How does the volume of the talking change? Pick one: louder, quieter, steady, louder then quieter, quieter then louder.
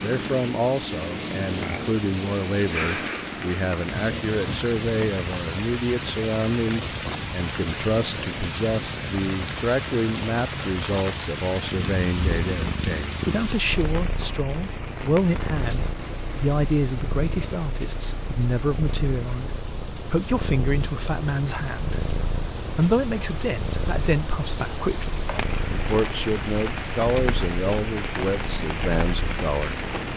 steady.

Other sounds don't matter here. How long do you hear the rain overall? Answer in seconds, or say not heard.
30 s.